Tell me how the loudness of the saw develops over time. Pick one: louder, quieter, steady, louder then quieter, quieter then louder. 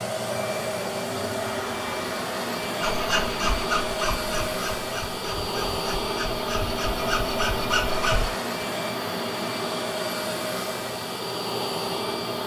quieter then louder.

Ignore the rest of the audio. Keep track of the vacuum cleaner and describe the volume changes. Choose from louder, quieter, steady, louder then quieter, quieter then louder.
steady.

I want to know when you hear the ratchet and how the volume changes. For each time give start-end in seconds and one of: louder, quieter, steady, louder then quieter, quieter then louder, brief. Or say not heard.
not heard.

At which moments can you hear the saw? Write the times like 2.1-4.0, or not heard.
2.8-8.4.